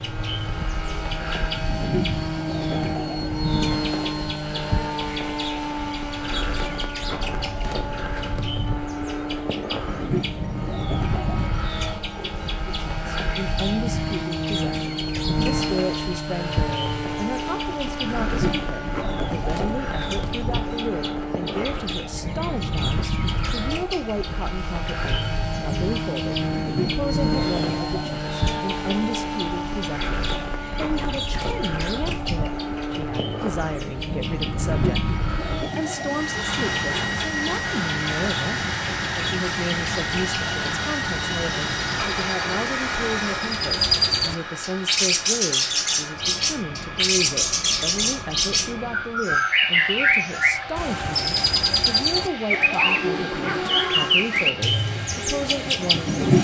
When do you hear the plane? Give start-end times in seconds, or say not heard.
0.0-56.4.